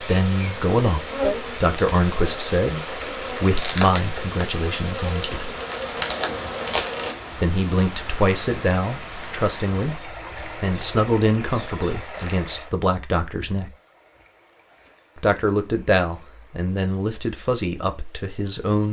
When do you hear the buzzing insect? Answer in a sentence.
The buzzing insect can be heard from 0.0 to 7.2 s.